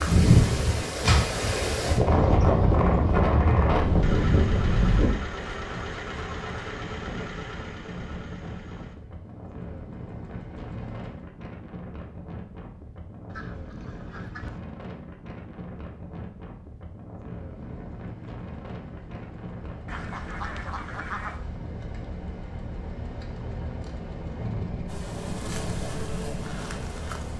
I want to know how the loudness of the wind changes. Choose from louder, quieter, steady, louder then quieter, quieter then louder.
quieter.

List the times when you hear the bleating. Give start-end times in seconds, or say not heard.
not heard.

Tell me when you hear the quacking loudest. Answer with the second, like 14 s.
21 s.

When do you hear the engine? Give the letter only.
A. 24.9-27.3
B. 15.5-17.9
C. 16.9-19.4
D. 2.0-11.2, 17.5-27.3
D.